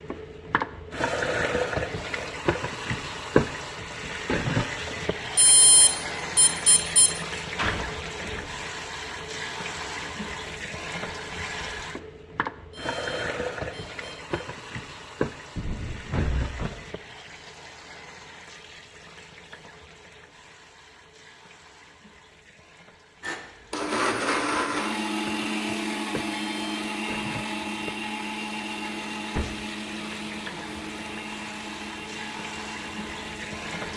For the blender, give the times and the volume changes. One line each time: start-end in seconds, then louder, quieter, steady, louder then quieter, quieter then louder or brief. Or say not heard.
23.2-33.9 quieter.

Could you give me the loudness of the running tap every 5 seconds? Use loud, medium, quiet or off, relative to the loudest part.
loud, medium, medium, medium, quiet, quiet, medium.